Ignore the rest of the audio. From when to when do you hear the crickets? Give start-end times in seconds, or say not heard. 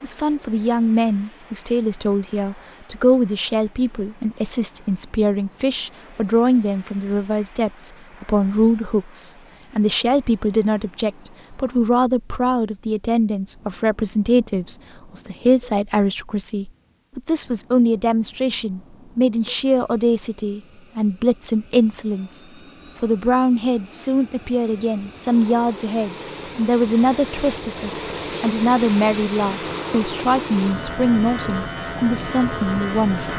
not heard.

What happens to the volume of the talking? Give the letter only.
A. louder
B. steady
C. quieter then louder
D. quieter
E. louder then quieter
B.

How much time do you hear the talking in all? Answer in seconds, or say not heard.
33 s.